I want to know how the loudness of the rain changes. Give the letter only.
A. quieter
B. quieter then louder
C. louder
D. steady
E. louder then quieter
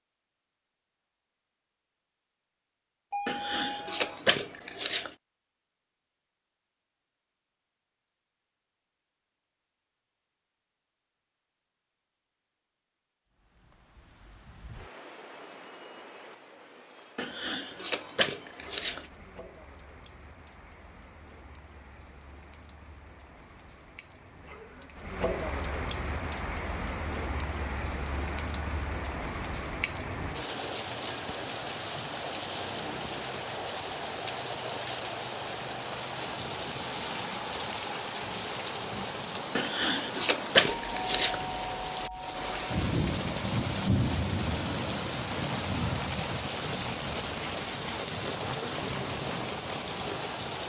C.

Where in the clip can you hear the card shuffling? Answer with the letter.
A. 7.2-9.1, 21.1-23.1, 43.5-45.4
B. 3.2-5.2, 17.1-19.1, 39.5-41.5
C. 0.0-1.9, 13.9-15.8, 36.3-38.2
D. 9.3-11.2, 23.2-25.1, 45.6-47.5
B.